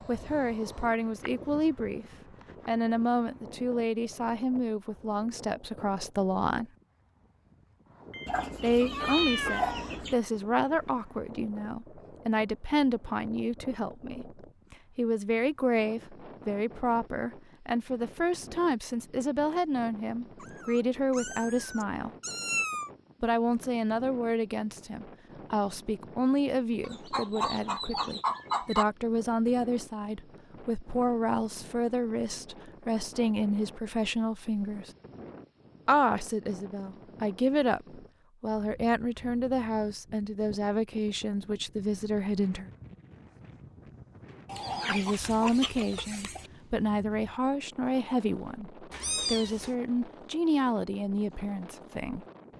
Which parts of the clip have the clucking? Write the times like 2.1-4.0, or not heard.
8.2-10.2, 26.8-28.9, 44.5-46.5.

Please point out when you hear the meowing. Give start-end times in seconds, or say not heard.
8.1-9.9, 20.4-22.9, 48.9-49.8.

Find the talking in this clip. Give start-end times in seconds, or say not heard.
0.1-2.0, 2.6-6.7, 8.6-22.1, 23.2-34.9, 35.9-42.7, 44.9-52.2.